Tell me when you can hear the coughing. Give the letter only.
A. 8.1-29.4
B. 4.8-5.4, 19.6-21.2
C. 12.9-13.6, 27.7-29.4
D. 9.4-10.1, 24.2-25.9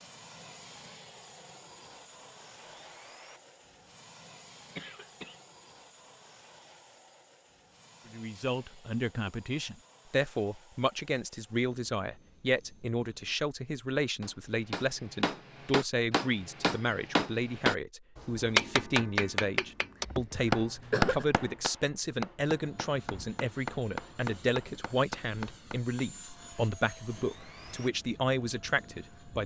B.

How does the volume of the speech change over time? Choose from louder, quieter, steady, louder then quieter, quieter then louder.
steady.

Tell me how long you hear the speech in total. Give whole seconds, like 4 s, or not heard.
21 s.